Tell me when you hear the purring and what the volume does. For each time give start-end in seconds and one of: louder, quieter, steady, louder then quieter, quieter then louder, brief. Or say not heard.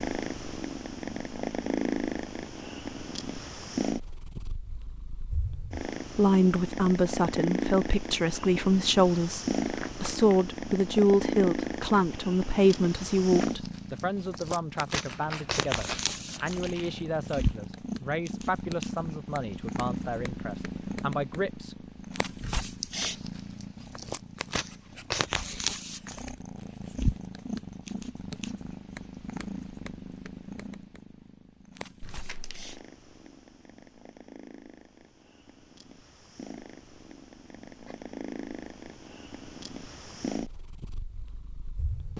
0.0-42.1 quieter.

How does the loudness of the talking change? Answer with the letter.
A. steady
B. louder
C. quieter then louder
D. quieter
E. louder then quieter
D.